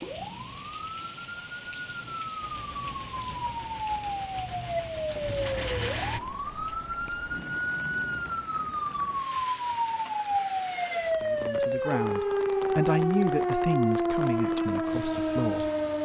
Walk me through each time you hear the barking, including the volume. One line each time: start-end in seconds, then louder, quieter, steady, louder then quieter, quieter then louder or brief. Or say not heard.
not heard.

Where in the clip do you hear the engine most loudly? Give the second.
6 s.